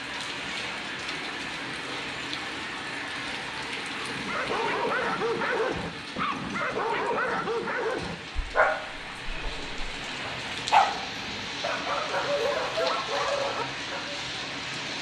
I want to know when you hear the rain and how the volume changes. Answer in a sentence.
The rain can be heard from 0.0 to 14.9 s, getting quieter then louder.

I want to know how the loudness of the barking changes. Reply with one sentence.
The volume of the barking stays about the same.